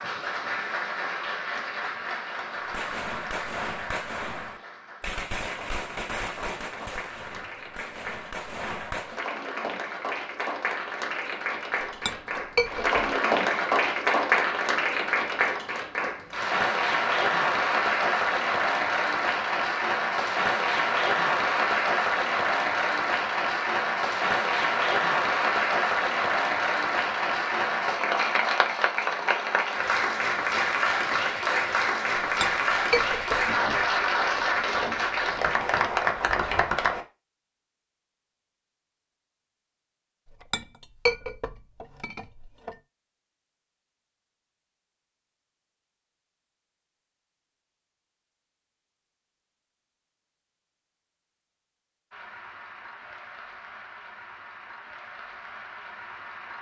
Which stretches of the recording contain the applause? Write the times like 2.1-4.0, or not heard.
0.0-37.0, 52.1-56.5.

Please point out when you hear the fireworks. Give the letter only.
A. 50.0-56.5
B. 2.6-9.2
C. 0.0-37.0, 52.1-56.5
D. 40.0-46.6
B.